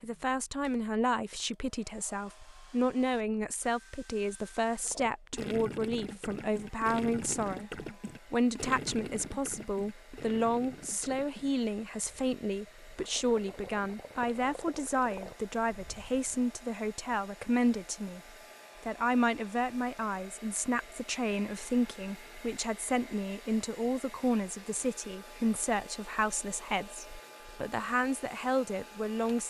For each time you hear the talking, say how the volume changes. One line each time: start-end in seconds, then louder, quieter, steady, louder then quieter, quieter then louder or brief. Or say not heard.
0.0-18.2 steady
18.8-29.4 steady.